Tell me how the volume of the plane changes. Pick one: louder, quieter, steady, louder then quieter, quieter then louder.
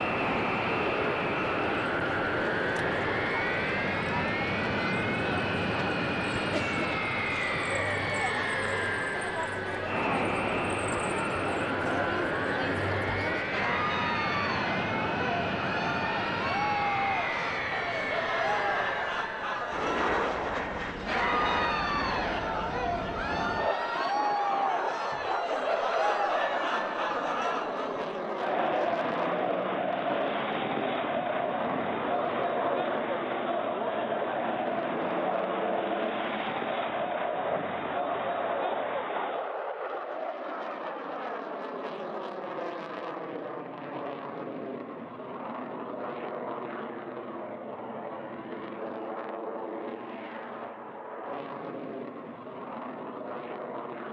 quieter.